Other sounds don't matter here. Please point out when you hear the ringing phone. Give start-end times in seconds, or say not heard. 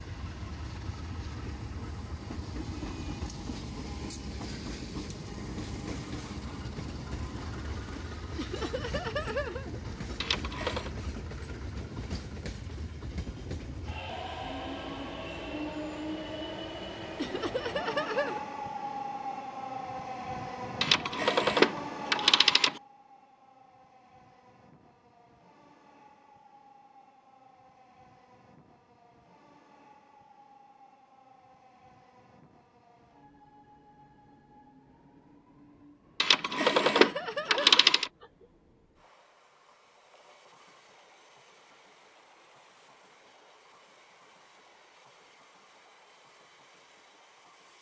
10.2-10.9, 20.8-22.8, 36.2-38.1.